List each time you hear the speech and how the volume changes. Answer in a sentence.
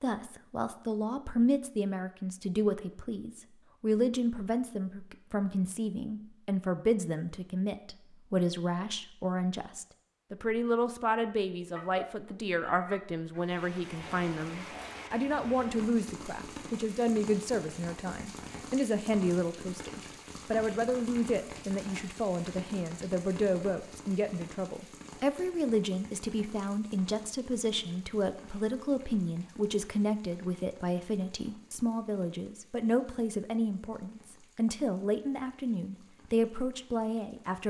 The speech can be heard from 0.0 to 37.6 s, at a steady volume.